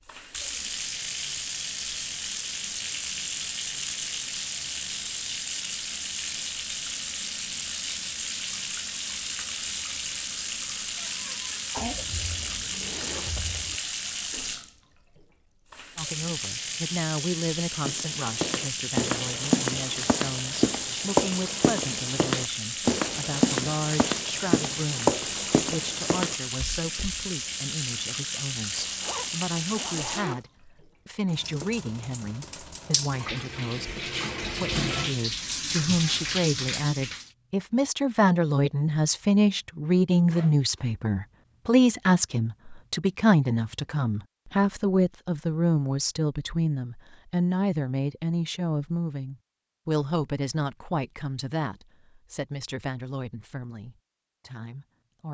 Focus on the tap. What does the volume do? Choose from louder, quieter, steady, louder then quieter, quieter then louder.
steady.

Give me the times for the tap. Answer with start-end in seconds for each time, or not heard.
0.0-37.3.